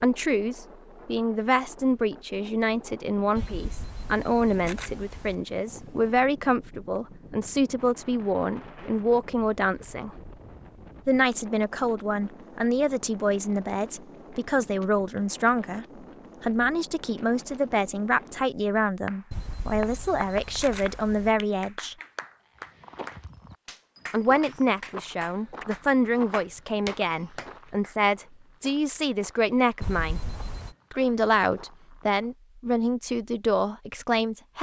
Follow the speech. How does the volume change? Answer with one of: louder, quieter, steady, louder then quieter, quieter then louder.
steady.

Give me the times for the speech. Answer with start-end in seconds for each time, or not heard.
0.0-10.3, 11.1-21.9, 24.1-30.2, 30.9-34.5.